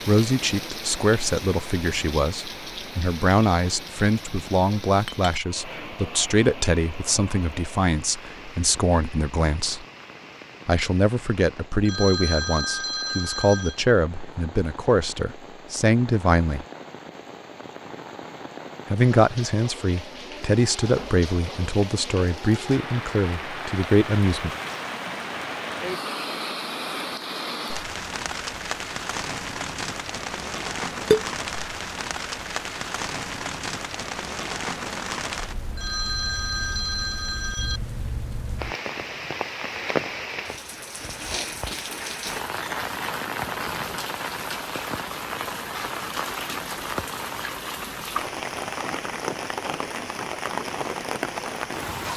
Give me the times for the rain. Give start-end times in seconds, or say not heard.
0.0-52.1.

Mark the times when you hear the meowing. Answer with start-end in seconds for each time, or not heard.
not heard.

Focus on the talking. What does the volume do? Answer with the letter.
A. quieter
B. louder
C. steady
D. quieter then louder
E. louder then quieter
C.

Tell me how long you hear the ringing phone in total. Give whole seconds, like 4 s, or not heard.
4 s.